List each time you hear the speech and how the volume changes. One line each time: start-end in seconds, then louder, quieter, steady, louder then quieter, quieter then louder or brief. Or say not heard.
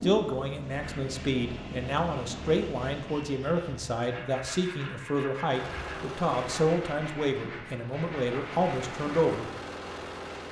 0.0-9.4 steady.